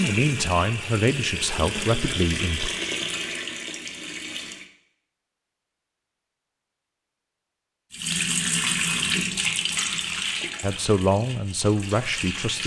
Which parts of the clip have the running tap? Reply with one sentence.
The running tap can be heard from 0.0 to 4.7 s and from 7.9 to 12.6 s.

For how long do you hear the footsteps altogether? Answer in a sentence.
You can't hear the footsteps here.